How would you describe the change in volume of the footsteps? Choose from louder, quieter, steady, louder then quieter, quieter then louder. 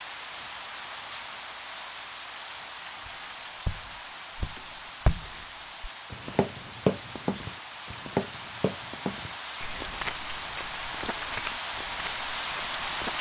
quieter.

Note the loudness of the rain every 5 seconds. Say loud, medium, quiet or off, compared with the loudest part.
medium, medium, loud.